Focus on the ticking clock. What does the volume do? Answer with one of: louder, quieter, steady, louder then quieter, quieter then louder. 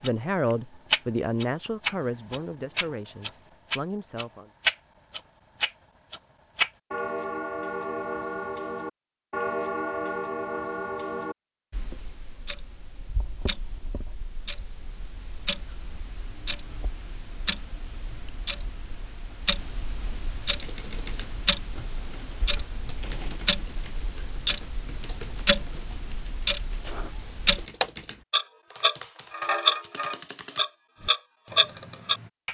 quieter then louder.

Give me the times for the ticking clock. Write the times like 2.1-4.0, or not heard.
0.0-32.4.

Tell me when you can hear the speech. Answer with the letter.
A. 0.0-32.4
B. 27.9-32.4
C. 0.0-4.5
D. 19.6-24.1
C.